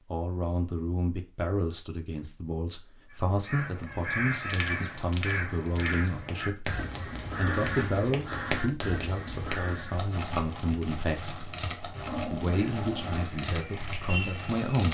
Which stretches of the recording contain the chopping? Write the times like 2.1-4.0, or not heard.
not heard.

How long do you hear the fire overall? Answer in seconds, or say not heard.
11 s.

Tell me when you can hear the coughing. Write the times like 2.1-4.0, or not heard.
not heard.